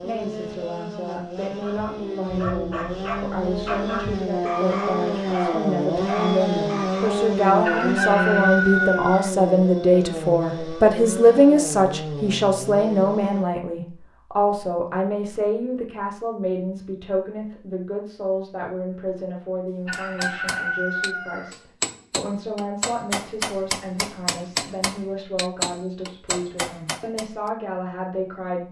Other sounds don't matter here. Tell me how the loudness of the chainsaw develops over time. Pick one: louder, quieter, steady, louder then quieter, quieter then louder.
louder then quieter.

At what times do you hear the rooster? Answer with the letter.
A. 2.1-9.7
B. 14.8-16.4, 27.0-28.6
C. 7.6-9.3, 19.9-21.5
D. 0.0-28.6
C.